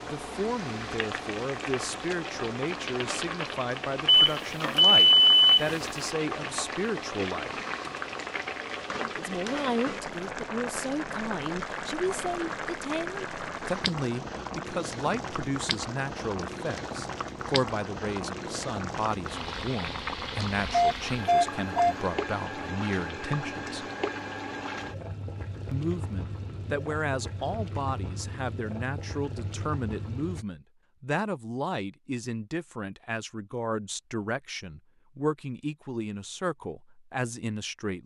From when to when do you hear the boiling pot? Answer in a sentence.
You can hear the boiling pot from 0.0 to 30.4 s.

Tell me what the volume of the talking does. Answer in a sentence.
The loudness of the talking stays about the same.